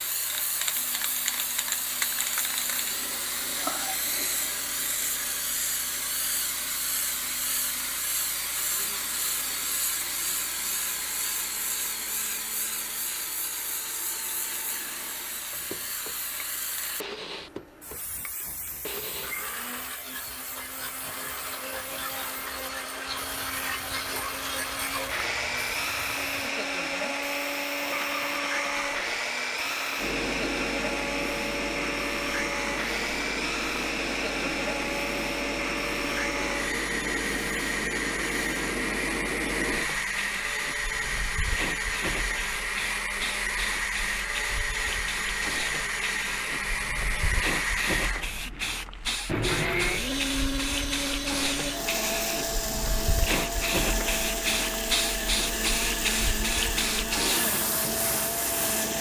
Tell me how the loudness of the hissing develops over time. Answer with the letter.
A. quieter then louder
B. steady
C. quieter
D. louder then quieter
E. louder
A.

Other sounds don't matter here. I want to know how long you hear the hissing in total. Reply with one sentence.
You can hear the hissing for 59 seconds altogether.